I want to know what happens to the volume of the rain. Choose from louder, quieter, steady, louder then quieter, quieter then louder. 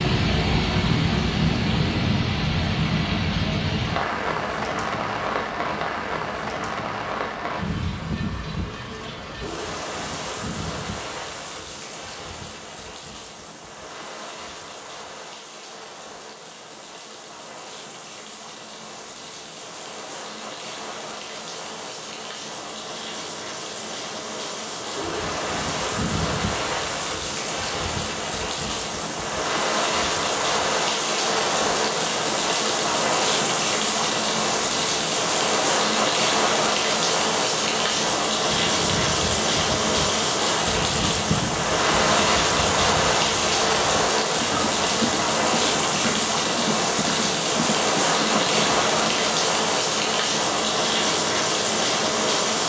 quieter then louder.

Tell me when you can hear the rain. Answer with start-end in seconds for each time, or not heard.
0.0-52.6.